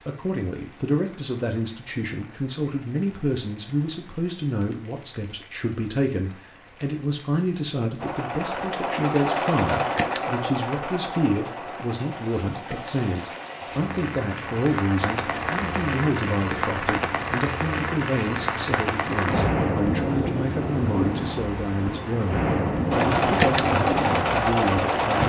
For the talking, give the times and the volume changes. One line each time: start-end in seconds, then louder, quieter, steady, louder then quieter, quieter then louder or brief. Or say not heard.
0.1-25.2 steady.